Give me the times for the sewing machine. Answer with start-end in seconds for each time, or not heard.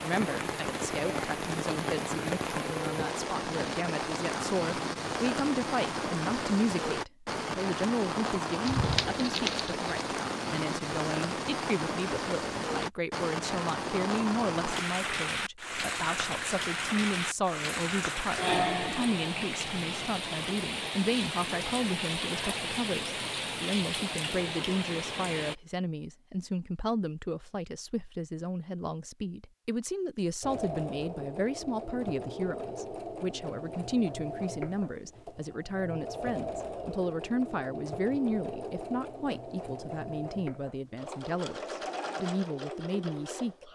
30.4-43.7.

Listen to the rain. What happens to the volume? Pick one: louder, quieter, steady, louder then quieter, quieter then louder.
steady.